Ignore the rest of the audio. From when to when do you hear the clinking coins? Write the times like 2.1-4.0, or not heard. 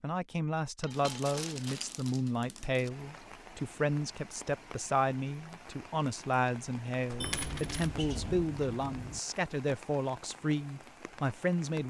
0.8-1.6, 7.2-9.2.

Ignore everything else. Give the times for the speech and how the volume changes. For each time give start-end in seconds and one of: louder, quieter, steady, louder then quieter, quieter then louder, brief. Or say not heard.
0.0-11.8 steady.